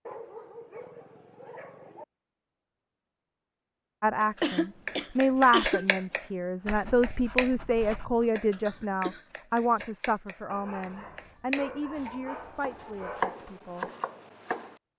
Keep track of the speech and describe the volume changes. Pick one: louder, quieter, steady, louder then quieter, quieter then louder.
quieter.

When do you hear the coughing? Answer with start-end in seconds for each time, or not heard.
4.4-5.8, 8.7-9.2.